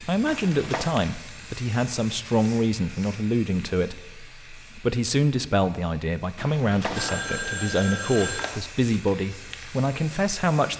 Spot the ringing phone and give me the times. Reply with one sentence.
You can hear the ringing phone from 0.2 to 0.9 s and from 6.3 to 8.6 s.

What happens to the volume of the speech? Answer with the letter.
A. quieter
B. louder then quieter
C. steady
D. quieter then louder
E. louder
C.